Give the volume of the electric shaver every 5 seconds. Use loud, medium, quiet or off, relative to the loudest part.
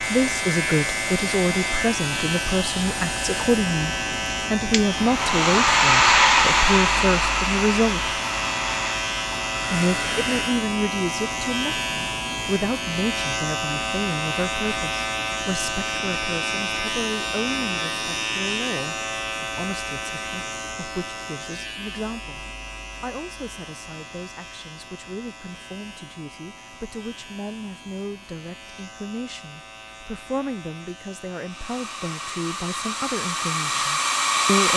loud, loud, loud, loud, medium, quiet, quiet.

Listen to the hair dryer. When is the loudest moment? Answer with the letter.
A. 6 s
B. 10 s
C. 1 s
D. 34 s
A.